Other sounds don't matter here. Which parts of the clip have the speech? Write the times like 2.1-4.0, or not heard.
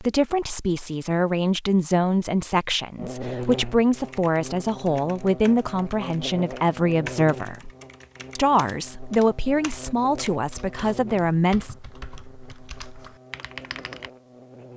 0.0-7.7, 8.3-11.8.